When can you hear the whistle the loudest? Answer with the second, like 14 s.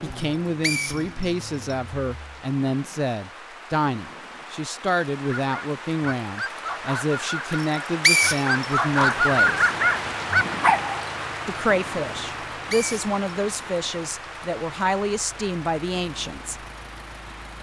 8 s.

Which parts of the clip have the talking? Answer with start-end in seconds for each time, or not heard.
0.0-9.7, 11.4-16.6.